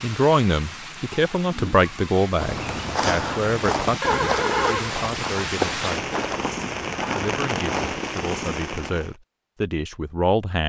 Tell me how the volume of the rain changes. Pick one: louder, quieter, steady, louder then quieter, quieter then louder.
louder.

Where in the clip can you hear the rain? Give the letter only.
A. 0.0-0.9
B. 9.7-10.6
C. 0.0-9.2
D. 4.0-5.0
C.